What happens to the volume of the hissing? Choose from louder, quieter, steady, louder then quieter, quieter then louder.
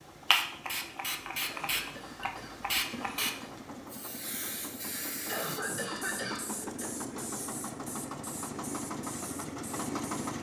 quieter.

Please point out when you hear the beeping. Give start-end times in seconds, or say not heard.
not heard.